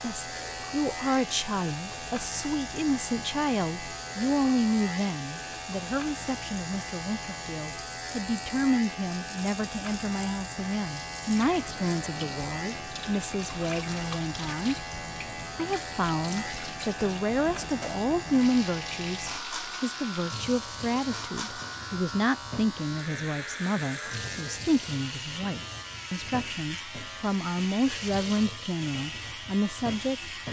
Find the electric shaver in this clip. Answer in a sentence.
You can hear the electric shaver from 0.0 to 30.4 s.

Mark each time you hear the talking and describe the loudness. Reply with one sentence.
The talking can be heard from 0.0 to 30.4 s, at a steady volume.